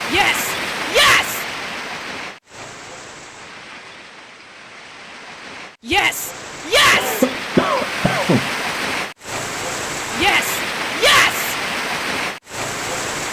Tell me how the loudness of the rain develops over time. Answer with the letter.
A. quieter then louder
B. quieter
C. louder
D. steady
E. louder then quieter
A.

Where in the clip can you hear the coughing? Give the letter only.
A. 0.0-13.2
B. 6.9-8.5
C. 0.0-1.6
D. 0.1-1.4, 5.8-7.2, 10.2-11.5
B.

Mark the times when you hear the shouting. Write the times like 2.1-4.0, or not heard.
0.1-1.4, 5.8-7.2, 10.2-11.5.